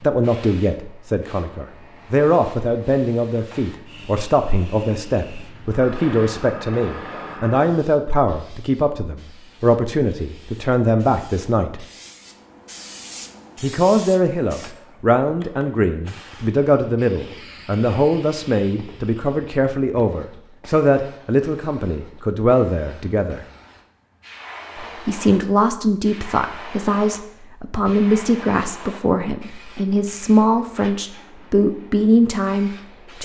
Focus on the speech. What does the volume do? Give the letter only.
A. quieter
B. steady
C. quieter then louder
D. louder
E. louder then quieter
B.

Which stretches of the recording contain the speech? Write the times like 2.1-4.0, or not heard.
0.0-11.8, 13.6-23.4, 24.8-33.2.